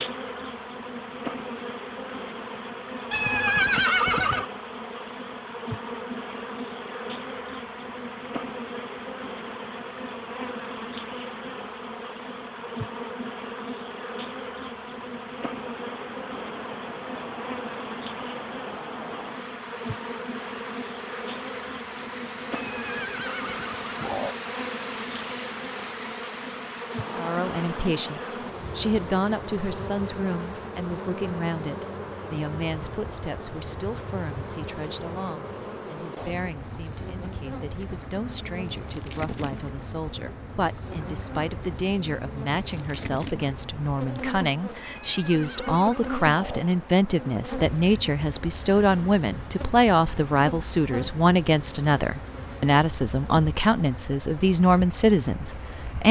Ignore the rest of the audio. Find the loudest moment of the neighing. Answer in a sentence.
The volume of the neighing peaks at 4 seconds.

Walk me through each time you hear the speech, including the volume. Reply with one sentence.
The speech can be heard from 27.1 to 56.0 s, getting quieter then louder.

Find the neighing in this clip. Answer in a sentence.
The neighing can be heard from 3.1 to 4.5 s, from 22.5 to 24.4 s and from 44.8 to 46.8 s.